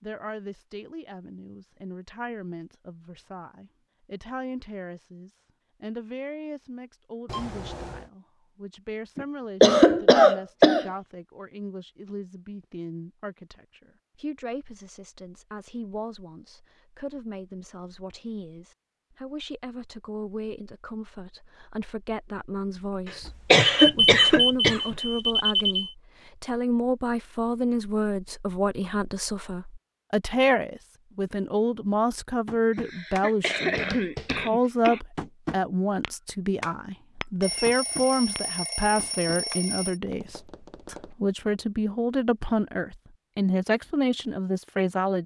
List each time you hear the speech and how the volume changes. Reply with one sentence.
The speech can be heard from 0.0 to 45.2 s, getting louder.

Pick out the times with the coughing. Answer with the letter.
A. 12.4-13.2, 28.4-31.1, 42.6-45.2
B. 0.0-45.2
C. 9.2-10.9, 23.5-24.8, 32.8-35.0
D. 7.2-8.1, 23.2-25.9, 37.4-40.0
C.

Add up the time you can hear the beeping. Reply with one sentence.
The beeping can be heard for 6 seconds in total.